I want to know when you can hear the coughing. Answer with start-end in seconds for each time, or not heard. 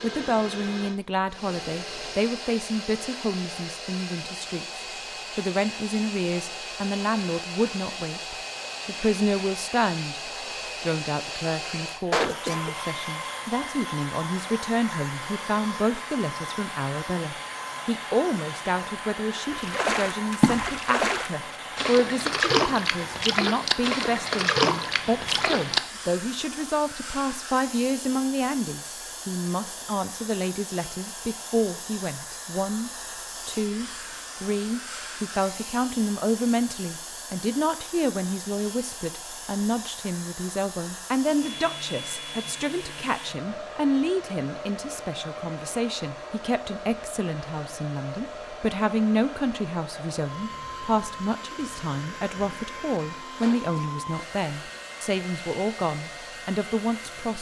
12.1-12.7, 53.4-54.0.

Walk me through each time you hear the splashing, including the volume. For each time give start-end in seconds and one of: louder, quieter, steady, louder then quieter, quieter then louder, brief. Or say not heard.
19.5-25.8 steady.